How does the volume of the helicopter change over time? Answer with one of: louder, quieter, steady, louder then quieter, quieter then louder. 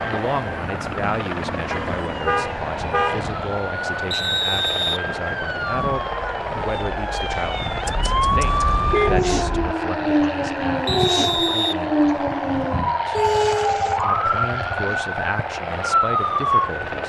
steady.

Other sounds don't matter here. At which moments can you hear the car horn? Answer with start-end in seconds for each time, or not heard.
1.7-3.4, 7.8-9.8, 13.1-15.0.